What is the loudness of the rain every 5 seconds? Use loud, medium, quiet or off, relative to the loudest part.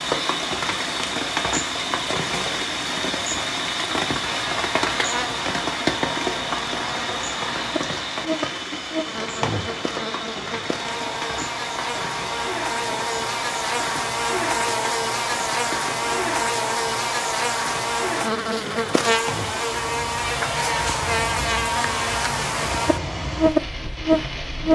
loud, loud, medium, medium, medium.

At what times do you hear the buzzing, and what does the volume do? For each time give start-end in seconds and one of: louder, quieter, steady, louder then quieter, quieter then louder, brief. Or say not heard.
4.2-24.7 louder.